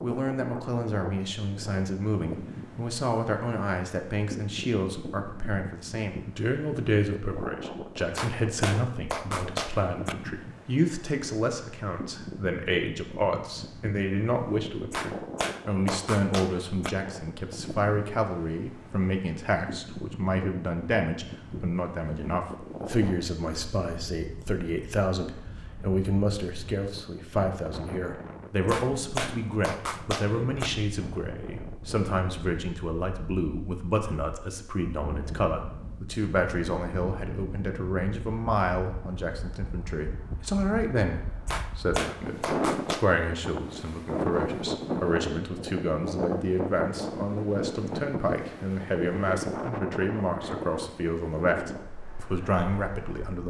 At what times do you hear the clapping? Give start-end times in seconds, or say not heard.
8.2-10.2, 14.9-16.9, 28.6-30.7, 41.5-43.0.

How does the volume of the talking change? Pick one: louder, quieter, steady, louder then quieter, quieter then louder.
steady.